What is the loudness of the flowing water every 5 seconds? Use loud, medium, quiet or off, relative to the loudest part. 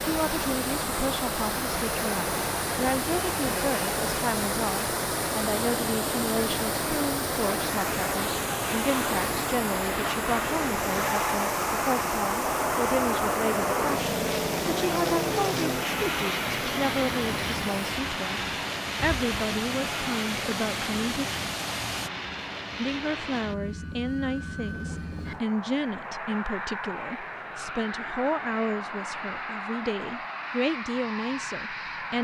loud, loud, loud, medium, loud, off, off.